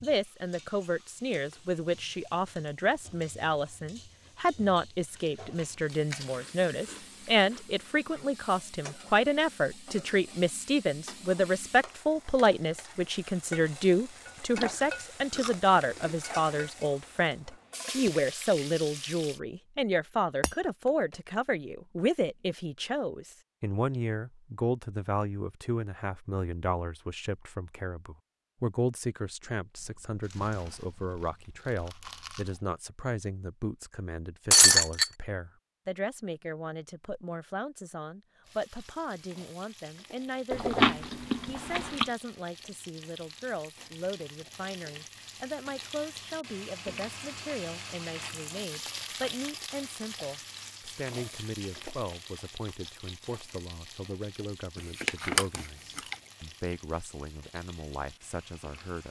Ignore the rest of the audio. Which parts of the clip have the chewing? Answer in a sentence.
The chewing can be heard from 5.2 to 7.9 s, from 14.6 to 16.1 s, from 29.8 to 32.6 s, from 40.5 to 42.1 s and from 54.8 to 56.1 s.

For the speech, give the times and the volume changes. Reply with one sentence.
The speech can be heard from 0.0 to 59.0 s, getting quieter.